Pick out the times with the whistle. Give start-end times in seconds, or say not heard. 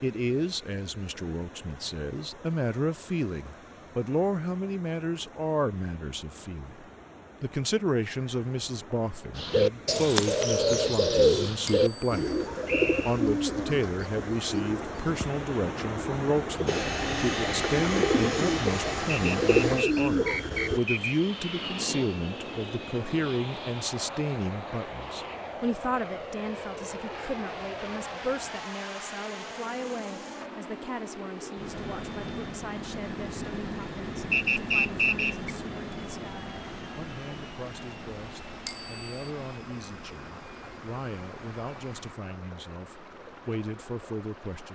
12.7-13.2, 19.3-21.1, 34.3-35.5.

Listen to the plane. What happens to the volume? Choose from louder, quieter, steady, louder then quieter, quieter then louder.
quieter.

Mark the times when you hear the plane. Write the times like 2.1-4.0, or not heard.
16.6-42.1.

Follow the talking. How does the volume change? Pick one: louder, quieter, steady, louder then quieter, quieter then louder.
quieter.